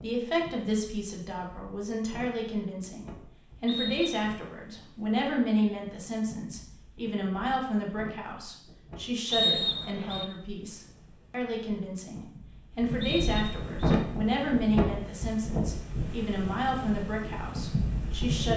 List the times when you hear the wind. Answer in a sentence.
The wind can be heard from 0.0 to 18.5 s.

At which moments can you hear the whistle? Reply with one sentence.
You can hear the whistle from 3.6 to 4.3 s, from 9.3 to 10.2 s and from 13.0 to 13.7 s.